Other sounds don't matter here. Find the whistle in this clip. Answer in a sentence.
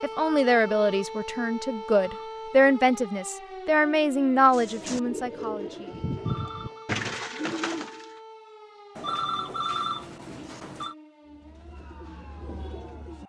You can't hear the whistle here.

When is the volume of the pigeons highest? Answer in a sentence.
The volume of the pigeons peaks at 7 seconds.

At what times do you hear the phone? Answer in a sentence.
The phone can be heard from 0.0 to 2.3 s, from 6.2 to 6.9 s and from 8.9 to 10.9 s.